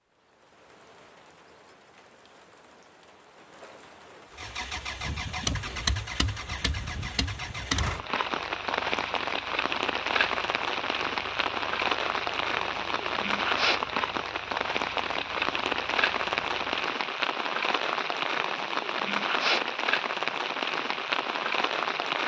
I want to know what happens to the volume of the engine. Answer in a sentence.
The loudness of the engine goes down.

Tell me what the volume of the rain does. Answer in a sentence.
The volume of the rain goes up.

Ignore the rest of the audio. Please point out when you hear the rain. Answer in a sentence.
You can hear the rain from 0.0 to 22.2 s.